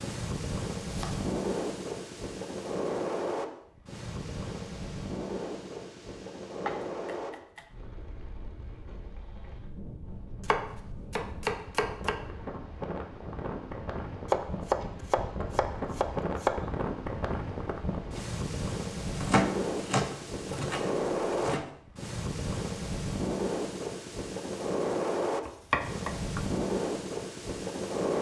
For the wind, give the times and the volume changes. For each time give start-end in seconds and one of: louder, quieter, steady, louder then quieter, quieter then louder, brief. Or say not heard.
0.0-28.1 quieter then louder.